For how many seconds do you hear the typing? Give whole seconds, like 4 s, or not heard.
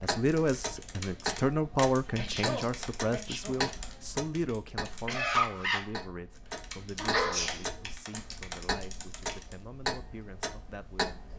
9 s.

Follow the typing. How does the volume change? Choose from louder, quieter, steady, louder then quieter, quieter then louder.
louder then quieter.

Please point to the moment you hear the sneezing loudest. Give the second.
7 s.